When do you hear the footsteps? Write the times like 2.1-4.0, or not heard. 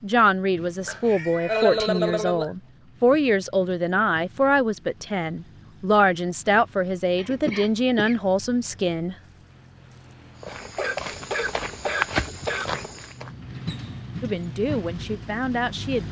10.4-13.3.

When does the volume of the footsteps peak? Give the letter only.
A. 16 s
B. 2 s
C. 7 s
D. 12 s
D.